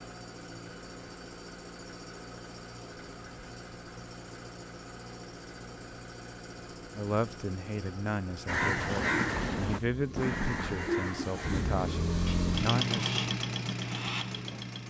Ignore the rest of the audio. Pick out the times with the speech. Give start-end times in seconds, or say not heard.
6.9-13.0.